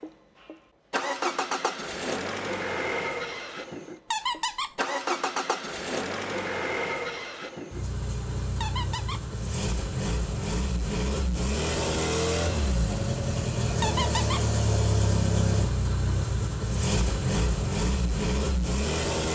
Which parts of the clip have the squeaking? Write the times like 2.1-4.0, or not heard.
4.1-4.8, 8.6-9.2, 13.8-14.4.